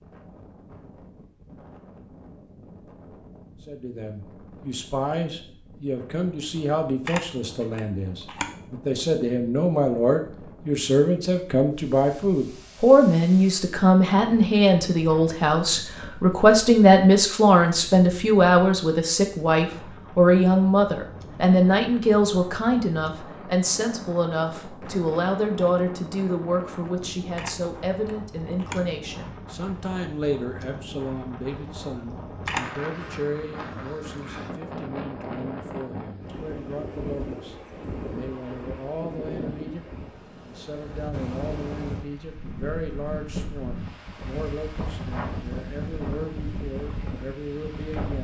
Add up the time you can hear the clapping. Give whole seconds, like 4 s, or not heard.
not heard.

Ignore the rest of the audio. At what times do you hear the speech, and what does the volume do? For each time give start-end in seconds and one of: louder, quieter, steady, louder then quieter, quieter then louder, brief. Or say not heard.
3.6-48.1 louder then quieter.